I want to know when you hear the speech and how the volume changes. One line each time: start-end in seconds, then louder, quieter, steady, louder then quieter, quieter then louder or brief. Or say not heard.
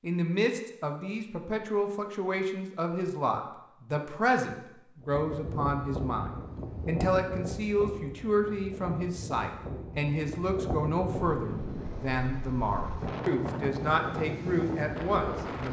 0.0-15.6 steady.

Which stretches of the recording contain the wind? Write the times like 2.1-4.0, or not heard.
5.0-15.6.